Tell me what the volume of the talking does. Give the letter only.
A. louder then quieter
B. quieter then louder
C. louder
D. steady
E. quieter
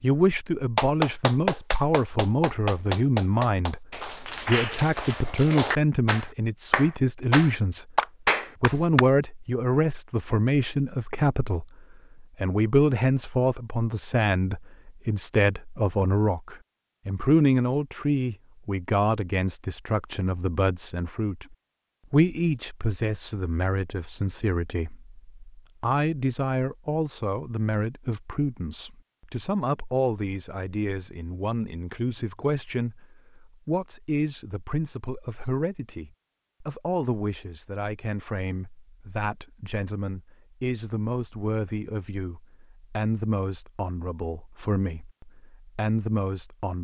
E.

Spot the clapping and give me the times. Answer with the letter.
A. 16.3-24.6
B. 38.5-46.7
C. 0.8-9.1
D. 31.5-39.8
C.